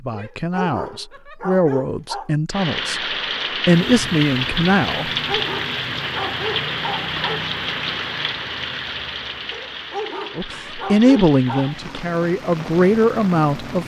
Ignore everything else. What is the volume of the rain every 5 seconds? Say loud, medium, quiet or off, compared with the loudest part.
loud, loud, medium.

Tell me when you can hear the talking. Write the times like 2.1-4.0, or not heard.
0.0-5.2, 10.3-13.8.